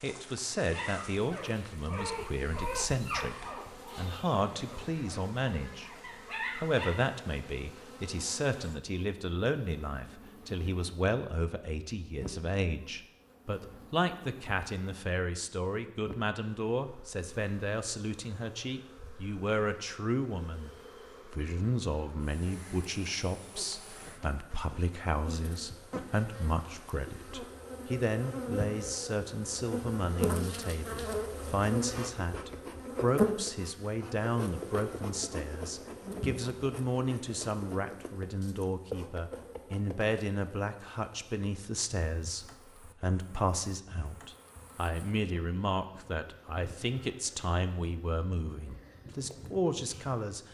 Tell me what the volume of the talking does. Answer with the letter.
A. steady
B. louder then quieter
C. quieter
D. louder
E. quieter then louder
A.